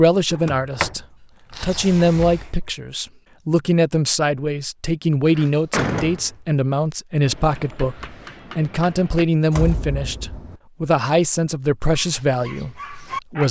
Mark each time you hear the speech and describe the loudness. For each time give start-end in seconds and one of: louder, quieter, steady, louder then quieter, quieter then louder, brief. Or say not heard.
0.0-13.4 steady.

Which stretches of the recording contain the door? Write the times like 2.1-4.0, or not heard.
0.3-0.9, 1.6-2.6, 5.2-6.2, 9.5-10.6.